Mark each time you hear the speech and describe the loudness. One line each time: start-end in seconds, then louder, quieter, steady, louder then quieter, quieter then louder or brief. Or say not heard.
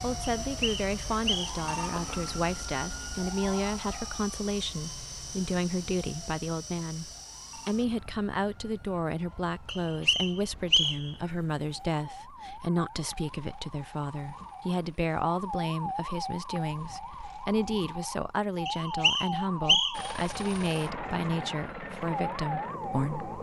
0.0-23.3 steady.